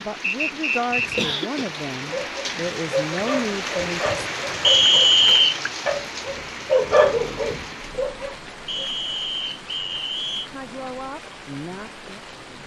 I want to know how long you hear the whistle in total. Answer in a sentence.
You can hear the whistle for 4 seconds altogether.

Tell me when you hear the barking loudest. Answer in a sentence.
The volume of the barking peaks at 7 seconds.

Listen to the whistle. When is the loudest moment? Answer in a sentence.
The loudest moment of the whistle is at 5 seconds.